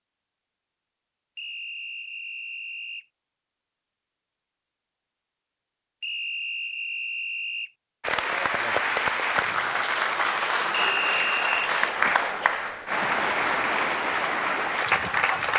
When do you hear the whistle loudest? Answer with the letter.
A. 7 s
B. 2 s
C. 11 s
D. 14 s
C.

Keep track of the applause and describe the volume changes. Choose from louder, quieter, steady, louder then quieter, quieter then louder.
steady.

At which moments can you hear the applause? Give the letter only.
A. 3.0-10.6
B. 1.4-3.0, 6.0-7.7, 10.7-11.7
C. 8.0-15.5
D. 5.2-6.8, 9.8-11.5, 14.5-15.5
C.